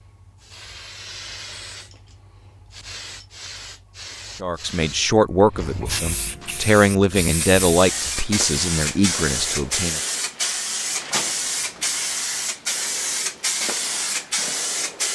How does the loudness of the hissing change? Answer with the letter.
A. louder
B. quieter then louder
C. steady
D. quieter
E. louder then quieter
A.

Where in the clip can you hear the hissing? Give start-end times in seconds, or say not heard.
0.0-15.1.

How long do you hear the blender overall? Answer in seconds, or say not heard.
not heard.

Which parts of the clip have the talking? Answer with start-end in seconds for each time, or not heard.
4.3-10.0.